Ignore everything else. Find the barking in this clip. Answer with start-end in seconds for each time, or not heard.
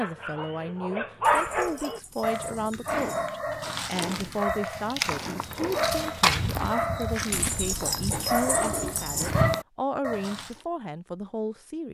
0.0-10.5.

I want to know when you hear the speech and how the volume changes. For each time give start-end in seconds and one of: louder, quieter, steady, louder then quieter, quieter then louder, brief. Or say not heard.
0.0-11.8 steady.